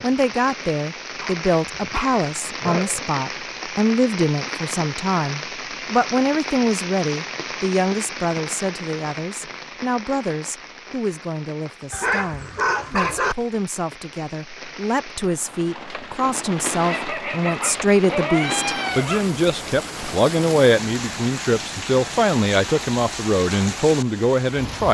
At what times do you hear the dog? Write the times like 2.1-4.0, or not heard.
1.2-3.0, 11.9-13.3, 16.8-19.4.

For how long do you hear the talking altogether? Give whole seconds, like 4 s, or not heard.
25 s.